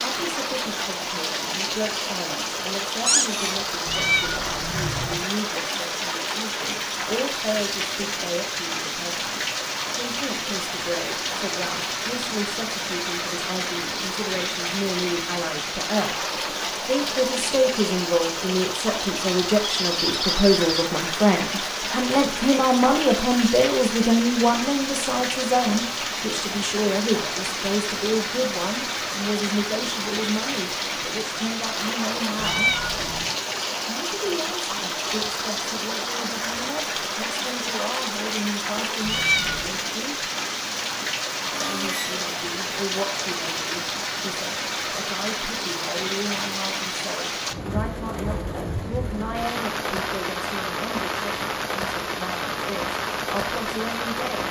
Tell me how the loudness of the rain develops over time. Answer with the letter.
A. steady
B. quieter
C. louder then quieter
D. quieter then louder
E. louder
A.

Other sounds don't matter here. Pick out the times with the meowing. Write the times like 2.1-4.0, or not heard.
3.9-5.2, 32.4-33.4, 39.0-39.8.